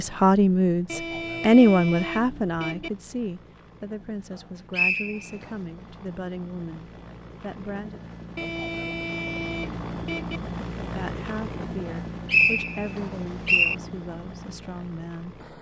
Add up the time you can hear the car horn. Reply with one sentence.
The car horn can be heard for 4 seconds in total.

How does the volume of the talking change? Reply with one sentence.
The volume of the talking goes down.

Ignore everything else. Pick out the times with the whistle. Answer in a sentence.
You can hear the whistle from 4.7 to 5.5 s and from 12.2 to 13.8 s.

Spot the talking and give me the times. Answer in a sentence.
You can hear the talking from 0.0 to 8.0 s and from 10.8 to 15.4 s.